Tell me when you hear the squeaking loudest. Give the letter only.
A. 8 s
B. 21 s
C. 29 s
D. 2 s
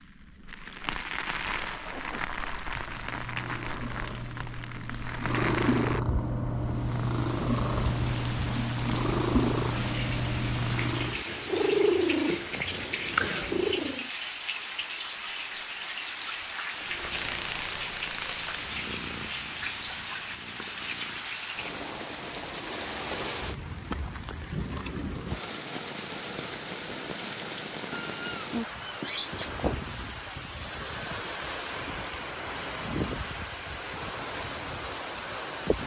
C.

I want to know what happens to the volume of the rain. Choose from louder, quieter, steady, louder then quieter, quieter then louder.
steady.